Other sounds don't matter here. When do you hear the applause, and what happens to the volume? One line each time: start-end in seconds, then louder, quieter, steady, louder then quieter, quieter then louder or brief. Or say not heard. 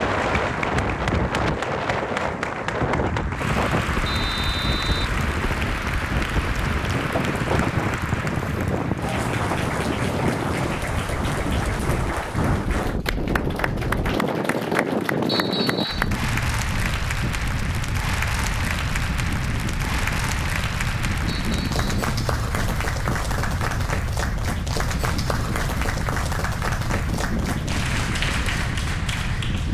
0.0-29.6 steady.